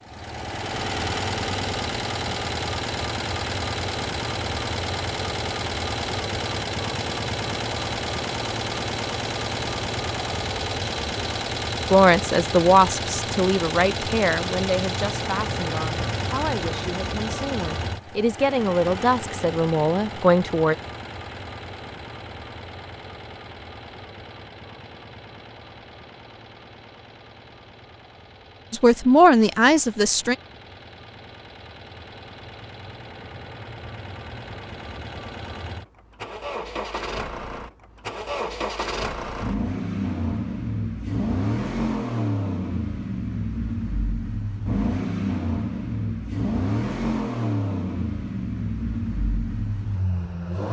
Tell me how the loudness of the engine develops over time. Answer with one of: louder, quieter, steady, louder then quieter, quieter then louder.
quieter then louder.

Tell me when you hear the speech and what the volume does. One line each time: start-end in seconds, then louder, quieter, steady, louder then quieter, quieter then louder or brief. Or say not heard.
11.9-20.8 quieter then louder
28.7-30.4 brief.